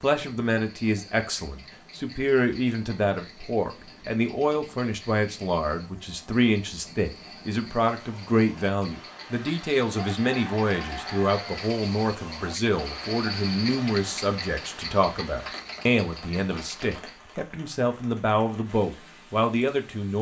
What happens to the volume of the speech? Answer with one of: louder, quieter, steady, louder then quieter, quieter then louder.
steady.